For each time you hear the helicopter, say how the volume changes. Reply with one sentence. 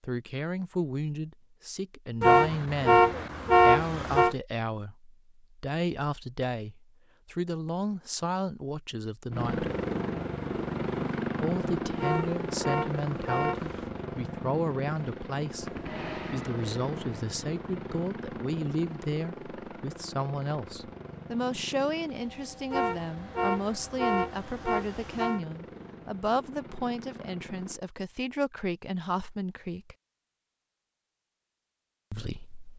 You can hear the helicopter from 9.3 to 27.8 s, getting quieter.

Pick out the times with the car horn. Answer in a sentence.
You can hear the car horn from 2.2 to 4.3 s, from 11.9 to 13.9 s and from 22.7 to 25.4 s.